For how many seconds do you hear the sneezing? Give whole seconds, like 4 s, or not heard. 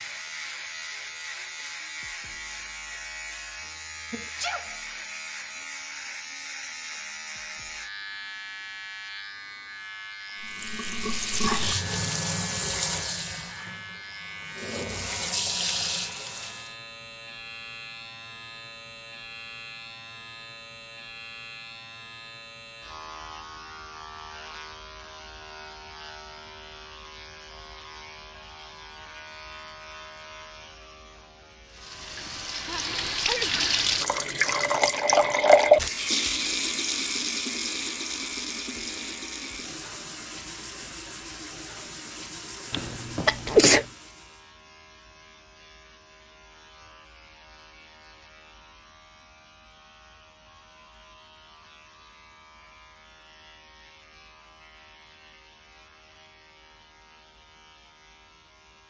3 s.